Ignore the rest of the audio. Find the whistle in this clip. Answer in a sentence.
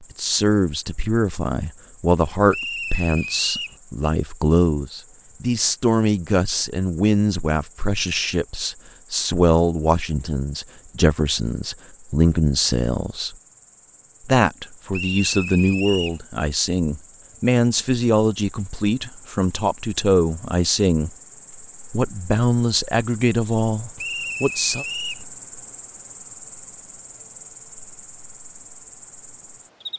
You can hear the whistle from 2.5 to 3.8 s, from 14.9 to 16.2 s and from 23.9 to 25.2 s.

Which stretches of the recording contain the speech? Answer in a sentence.
You can hear the speech from 0.1 to 13.3 s, from 14.2 to 21.1 s and from 21.9 to 24.9 s.